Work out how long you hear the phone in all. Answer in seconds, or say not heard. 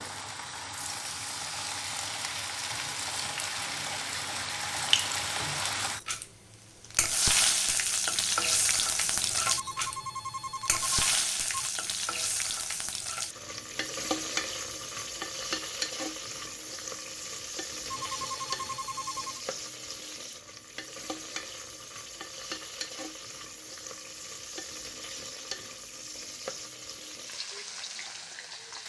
4 s.